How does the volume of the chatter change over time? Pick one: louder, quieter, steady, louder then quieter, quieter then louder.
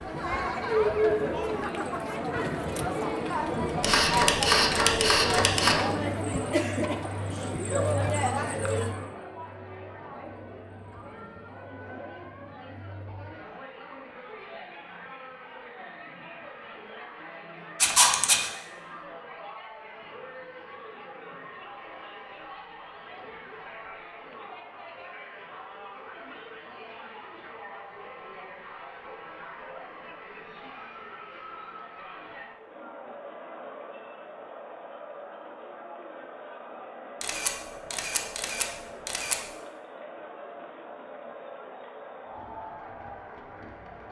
quieter.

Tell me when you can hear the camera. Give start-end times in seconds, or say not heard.
3.8-5.8, 17.8-18.5, 37.2-39.4.